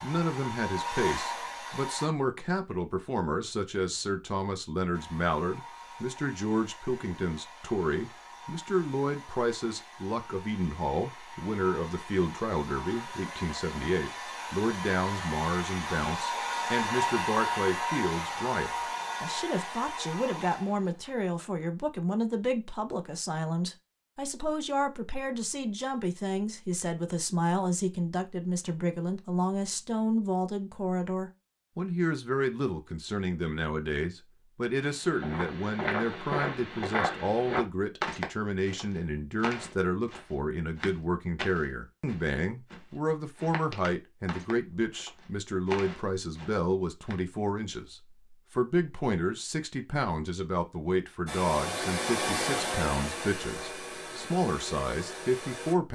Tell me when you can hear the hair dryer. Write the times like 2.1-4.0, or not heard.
0.0-2.1, 4.9-21.2, 51.2-55.8.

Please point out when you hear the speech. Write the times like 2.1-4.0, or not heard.
0.0-55.9.